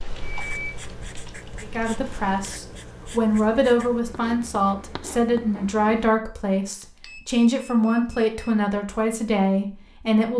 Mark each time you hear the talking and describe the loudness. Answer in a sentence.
You can hear the talking from 1.6 to 10.3 s, at a steady volume.